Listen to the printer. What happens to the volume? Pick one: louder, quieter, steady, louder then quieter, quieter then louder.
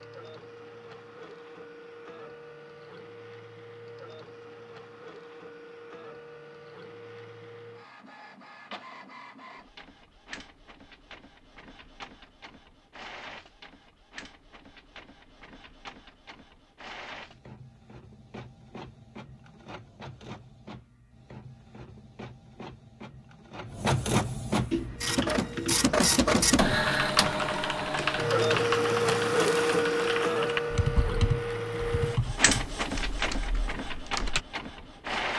louder.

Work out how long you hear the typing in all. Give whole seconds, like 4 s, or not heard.
10 s.